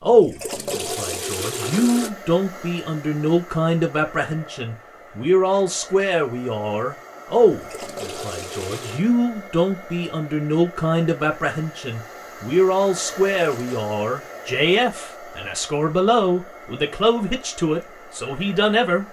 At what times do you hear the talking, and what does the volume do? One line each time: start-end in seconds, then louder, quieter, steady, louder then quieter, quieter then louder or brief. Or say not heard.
0.0-19.0 steady.